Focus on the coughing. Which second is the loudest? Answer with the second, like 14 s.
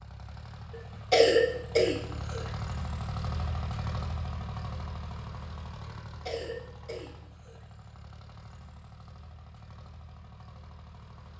1 s.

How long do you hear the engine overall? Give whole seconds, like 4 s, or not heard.
11 s.